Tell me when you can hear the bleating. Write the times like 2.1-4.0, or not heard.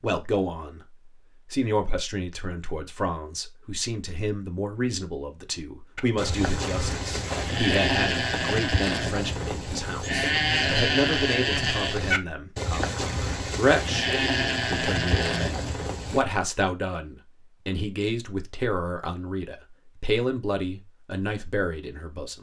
6.0-16.2.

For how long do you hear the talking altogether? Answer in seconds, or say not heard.
22 s.